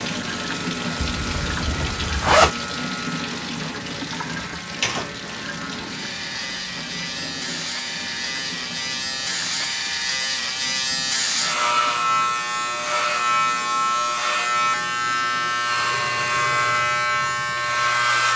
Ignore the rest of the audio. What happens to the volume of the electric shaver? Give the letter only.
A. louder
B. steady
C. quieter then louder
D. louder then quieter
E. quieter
A.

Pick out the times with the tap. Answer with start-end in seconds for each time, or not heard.
0.0-18.1.